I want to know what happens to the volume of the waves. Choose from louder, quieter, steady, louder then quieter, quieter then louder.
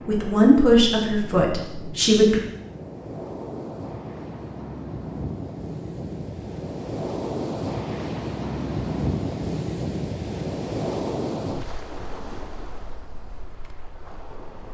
louder then quieter.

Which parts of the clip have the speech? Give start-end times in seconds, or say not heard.
0.1-2.4.